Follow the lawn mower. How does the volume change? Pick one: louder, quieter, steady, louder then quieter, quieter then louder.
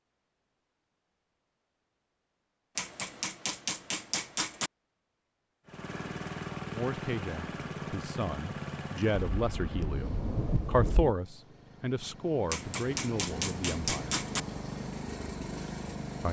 quieter then louder.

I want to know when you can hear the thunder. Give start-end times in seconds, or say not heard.
9.3-11.2.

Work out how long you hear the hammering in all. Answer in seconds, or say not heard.
4 s.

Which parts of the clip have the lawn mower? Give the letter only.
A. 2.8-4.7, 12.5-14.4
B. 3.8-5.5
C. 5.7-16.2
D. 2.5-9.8
C.